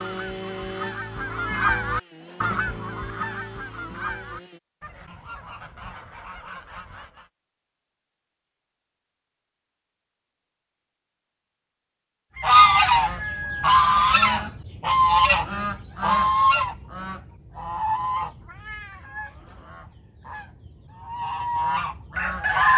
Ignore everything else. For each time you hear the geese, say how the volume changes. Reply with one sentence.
You can hear the geese from 0.0 to 7.2 s, getting quieter; and from 12.3 to 22.7 s, getting quieter then louder.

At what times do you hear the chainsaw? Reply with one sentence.
You can hear the chainsaw from 0.0 to 4.6 s.